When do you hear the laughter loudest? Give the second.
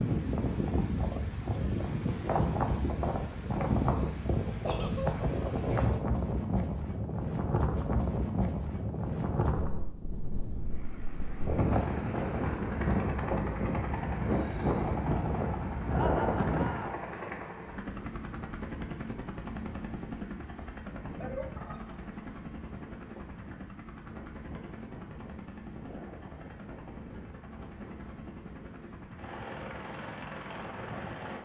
16 s.